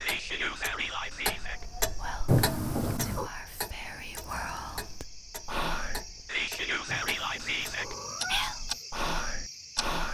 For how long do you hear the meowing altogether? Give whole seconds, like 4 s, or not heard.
3 s.